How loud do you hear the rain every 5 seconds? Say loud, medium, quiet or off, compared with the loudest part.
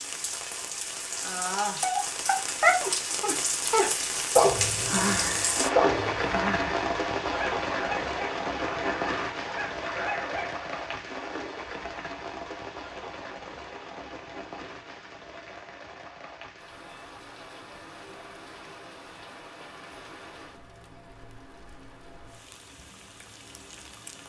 loud, loud, medium, quiet, quiet.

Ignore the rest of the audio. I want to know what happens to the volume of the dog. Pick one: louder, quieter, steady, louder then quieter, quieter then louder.
quieter.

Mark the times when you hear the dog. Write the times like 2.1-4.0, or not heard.
1.8-10.7.